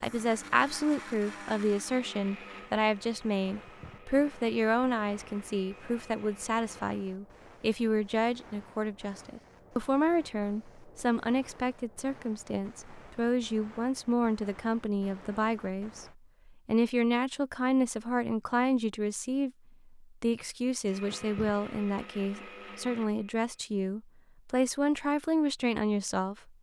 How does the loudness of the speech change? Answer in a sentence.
The volume of the speech stays about the same.